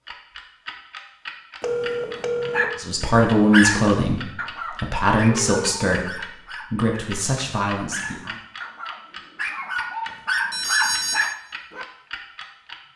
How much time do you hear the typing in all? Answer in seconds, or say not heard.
not heard.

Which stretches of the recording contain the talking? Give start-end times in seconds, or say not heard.
2.8-8.3.